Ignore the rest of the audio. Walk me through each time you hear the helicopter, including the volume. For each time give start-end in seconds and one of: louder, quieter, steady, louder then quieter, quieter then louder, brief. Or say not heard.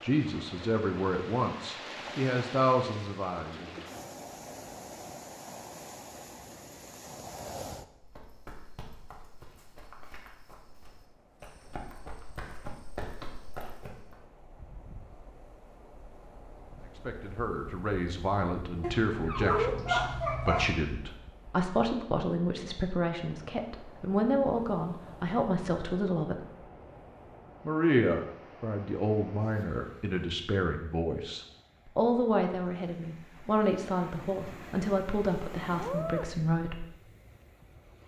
not heard.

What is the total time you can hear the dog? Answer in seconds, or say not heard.
2 s.